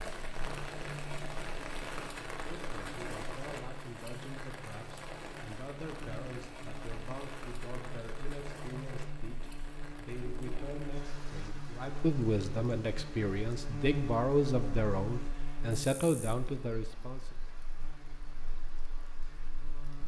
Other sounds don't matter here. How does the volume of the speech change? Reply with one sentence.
The loudness of the speech goes up.